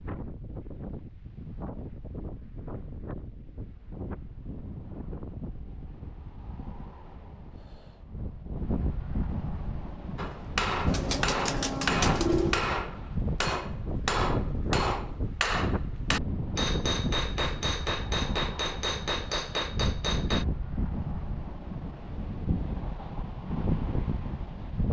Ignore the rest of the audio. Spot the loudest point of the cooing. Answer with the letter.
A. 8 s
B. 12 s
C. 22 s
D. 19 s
B.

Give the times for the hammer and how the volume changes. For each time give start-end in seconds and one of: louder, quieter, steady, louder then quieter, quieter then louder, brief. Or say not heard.
10.2-20.4 steady.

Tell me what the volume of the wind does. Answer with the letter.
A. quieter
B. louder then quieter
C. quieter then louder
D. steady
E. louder
E.